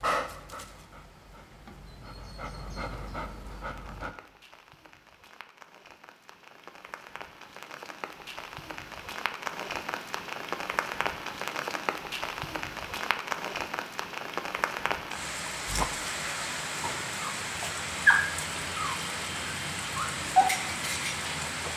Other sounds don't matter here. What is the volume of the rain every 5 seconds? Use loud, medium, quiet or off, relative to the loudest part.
quiet, medium, loud, loud, loud.